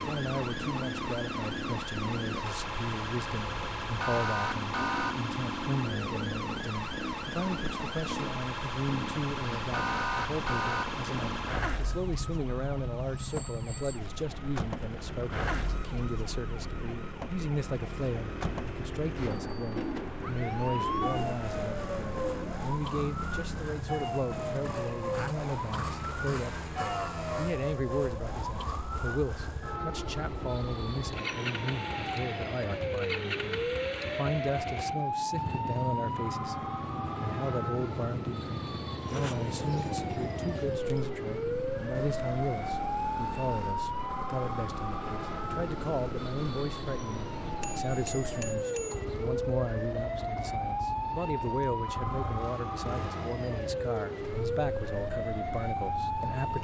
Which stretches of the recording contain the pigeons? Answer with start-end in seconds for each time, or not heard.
19.8-22.6, 39.0-41.1.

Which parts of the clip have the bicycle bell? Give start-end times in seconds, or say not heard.
13.2-14.0, 19.3-19.8, 47.6-49.0.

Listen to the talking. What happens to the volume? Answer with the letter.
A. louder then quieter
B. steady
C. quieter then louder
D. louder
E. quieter
B.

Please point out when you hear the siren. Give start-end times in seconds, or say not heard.
0.0-56.5.